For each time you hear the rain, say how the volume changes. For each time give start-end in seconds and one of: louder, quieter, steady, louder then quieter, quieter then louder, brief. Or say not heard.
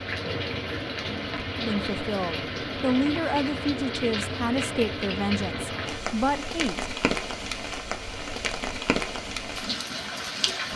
0.0-10.7 steady.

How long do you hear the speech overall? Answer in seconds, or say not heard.
5 s.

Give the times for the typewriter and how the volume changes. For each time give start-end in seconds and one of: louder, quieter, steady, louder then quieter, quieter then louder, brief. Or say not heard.
not heard.